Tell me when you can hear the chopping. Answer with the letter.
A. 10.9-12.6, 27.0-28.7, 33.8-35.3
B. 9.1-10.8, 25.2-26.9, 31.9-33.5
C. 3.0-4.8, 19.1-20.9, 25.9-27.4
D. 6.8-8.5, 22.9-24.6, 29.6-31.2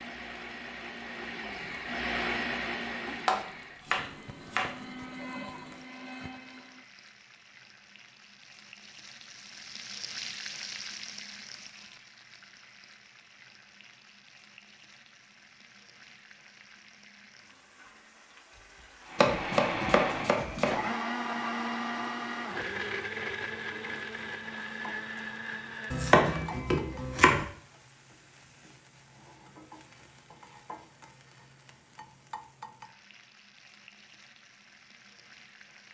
C.